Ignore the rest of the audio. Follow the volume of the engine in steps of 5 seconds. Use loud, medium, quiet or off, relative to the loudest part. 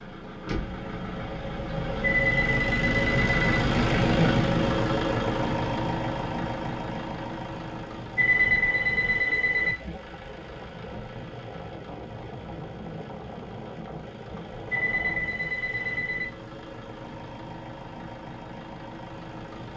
loud, medium, quiet, quiet.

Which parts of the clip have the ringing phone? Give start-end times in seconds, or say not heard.
2.0-3.5, 8.2-9.8, 14.7-16.2.